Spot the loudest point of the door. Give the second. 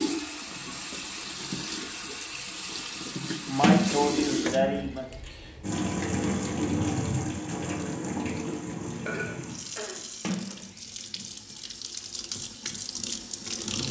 4 s.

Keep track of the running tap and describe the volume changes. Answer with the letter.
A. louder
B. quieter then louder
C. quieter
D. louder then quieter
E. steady
D.